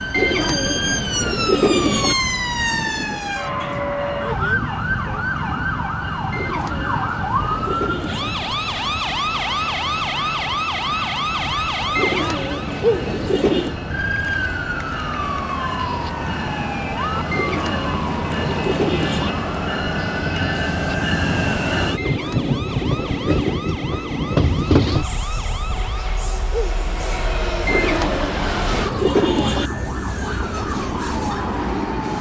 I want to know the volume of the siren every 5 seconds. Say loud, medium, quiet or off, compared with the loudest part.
loud, loud, loud, medium, medium, medium, medium.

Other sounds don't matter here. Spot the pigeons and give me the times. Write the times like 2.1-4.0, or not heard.
0.1-2.1, 6.3-8.3, 11.9-13.8, 17.3-19.3, 21.9-23.6, 27.6-29.7.